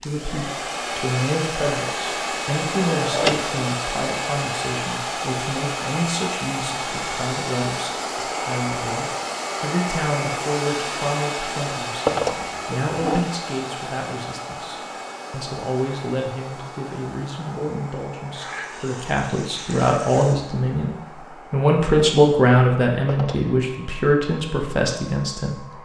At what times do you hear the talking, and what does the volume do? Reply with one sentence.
You can hear the talking from 0.0 to 25.7 s, getting louder.